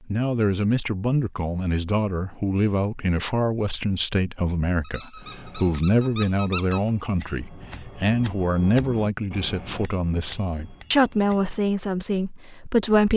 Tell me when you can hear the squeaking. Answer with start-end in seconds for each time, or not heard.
4.8-6.8.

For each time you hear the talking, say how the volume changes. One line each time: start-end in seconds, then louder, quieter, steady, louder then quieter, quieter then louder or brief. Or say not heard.
0.1-13.1 steady.